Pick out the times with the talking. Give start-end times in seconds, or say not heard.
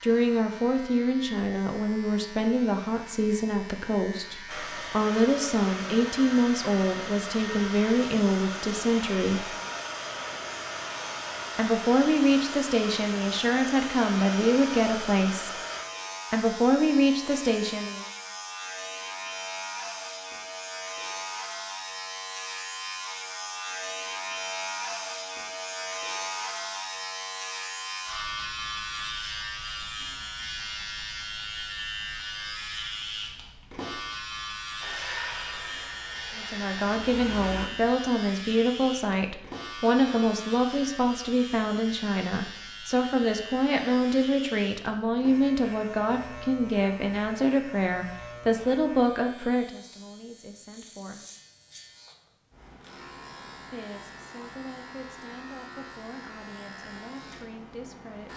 0.0-9.5, 11.6-15.6, 16.3-18.1, 36.4-51.2, 53.7-58.3.